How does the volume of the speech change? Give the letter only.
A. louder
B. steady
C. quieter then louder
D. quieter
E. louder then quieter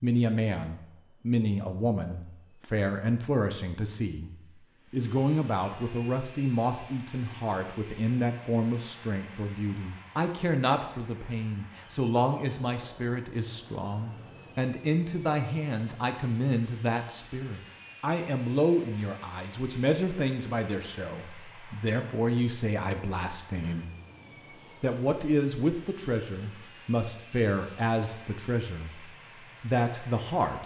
B.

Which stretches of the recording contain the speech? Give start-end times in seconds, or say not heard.
0.0-4.3, 4.9-23.9, 24.8-30.6.